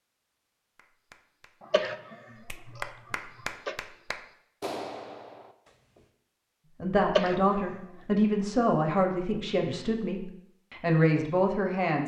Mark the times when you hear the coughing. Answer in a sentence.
The coughing can be heard from 1.6 to 3.8 s and from 7.0 to 7.8 s.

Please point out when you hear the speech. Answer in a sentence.
You can hear the speech from 6.8 to 12.0 s.